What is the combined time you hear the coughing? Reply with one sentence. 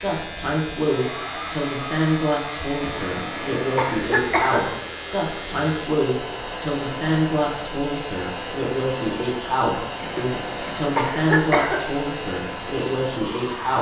The coughing can be heard for 4 seconds in total.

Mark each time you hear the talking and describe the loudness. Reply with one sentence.
The talking can be heard from 0.0 to 13.7 s, at a steady volume.